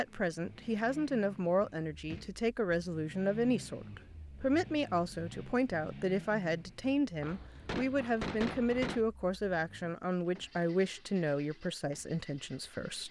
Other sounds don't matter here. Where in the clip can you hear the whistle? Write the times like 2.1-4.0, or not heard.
not heard.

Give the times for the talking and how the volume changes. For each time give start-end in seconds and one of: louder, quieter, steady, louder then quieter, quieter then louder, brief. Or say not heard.
0.0-13.0 steady.